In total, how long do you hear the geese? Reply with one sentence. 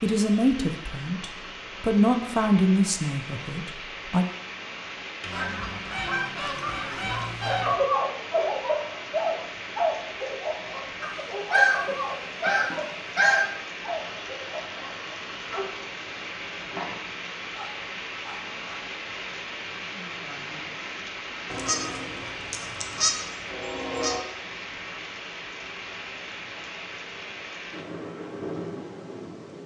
The geese can be heard for 8 seconds in total.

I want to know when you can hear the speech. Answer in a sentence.
You can hear the speech from 0.0 to 4.2 s.